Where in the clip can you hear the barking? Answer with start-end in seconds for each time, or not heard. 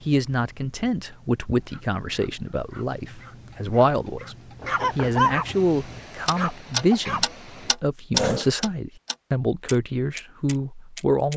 1.6-8.6.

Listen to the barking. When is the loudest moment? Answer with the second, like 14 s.
5 s.